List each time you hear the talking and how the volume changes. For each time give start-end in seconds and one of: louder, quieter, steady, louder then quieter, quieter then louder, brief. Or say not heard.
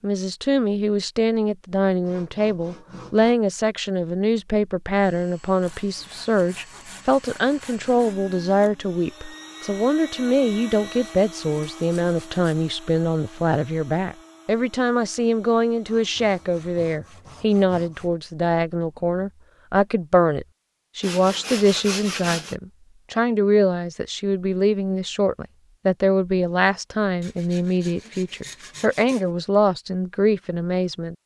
0.0-31.1 steady.